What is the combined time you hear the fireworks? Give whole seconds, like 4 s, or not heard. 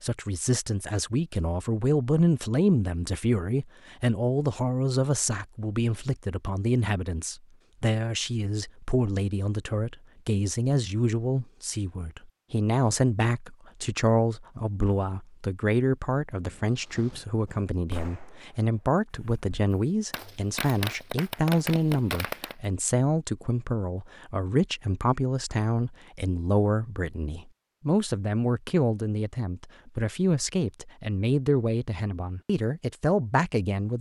6 s.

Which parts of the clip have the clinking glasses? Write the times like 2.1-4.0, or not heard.
not heard.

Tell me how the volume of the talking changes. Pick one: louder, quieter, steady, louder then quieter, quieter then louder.
steady.